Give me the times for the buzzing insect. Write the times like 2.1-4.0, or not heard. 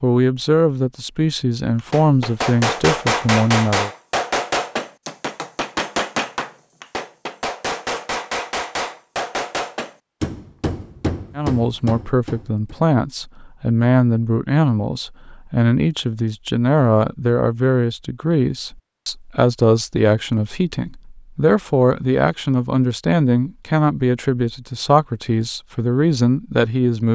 not heard.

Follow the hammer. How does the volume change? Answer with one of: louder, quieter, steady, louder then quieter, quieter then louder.
quieter.